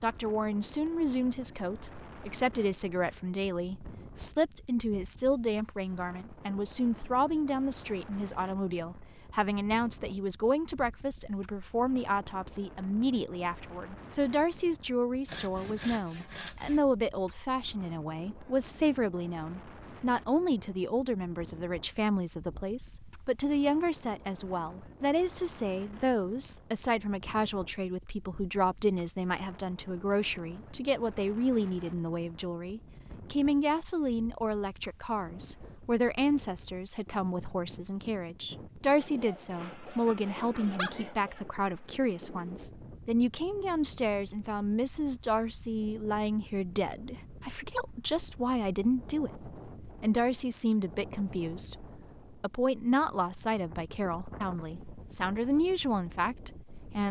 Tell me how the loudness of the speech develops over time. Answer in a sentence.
The loudness of the speech stays about the same.